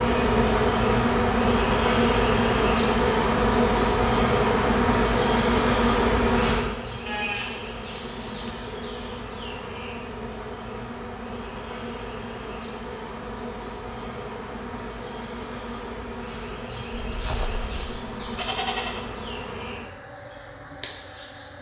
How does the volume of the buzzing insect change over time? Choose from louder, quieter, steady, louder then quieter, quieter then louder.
quieter.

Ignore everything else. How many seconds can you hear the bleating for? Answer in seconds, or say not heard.
4 s.